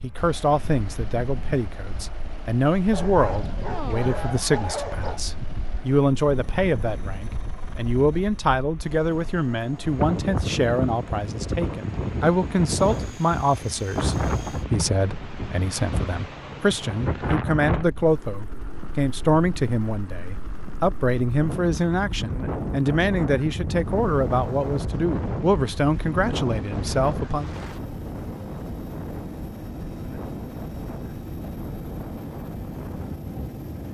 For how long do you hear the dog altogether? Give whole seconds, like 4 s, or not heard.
2 s.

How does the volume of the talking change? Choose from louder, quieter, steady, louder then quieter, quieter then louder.
steady.